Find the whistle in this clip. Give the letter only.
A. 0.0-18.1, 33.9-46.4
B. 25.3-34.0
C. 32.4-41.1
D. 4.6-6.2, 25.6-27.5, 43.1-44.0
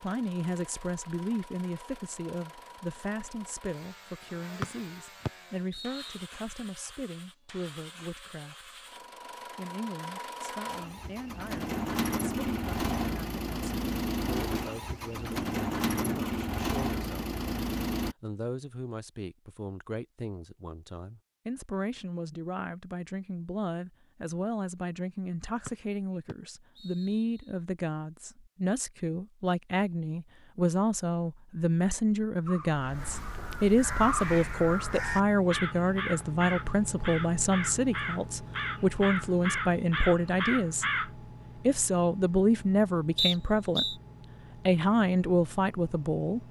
D.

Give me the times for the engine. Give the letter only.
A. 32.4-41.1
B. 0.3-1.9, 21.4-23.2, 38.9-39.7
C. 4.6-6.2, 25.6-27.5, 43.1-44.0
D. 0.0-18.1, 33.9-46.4
D.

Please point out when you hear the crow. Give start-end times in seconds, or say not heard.
32.4-41.1.